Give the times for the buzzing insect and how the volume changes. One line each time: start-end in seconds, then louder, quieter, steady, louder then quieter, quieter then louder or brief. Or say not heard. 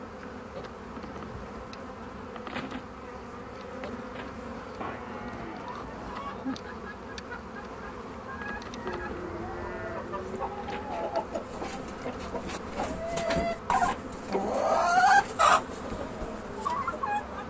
0.0-17.4 steady.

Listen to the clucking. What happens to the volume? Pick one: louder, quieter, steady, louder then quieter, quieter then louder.
louder.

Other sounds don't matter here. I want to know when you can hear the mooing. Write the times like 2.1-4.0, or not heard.
4.8-6.5, 8.8-10.8.